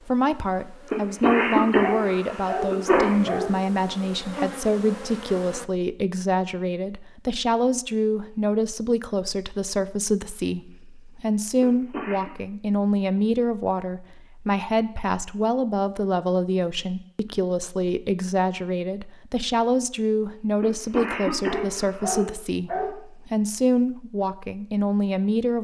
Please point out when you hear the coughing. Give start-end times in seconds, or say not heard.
0.9-3.1, 11.6-12.3, 20.6-22.2.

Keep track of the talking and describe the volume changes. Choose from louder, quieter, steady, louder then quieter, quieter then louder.
steady.